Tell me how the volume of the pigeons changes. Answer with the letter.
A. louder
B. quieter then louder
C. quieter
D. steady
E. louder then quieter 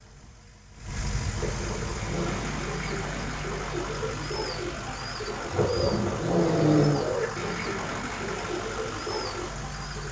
D.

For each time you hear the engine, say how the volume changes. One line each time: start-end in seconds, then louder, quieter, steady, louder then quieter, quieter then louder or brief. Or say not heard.
0.0-10.0 steady.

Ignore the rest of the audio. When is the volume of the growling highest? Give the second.
7 s.